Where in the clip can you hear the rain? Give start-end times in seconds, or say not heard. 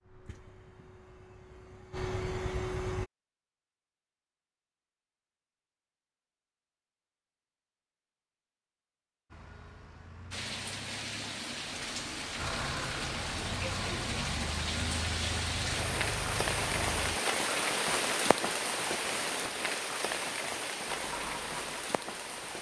10.3-22.5.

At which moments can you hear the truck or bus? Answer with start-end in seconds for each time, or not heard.
0.0-3.1, 9.3-17.2, 20.9-22.4.